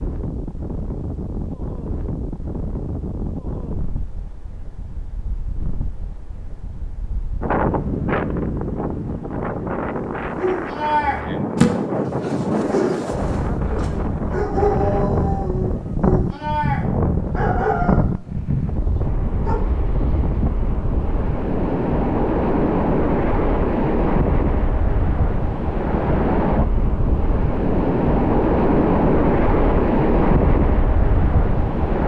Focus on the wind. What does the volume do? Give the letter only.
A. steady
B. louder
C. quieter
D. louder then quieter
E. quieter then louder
B.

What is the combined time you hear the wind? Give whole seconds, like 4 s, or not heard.
32 s.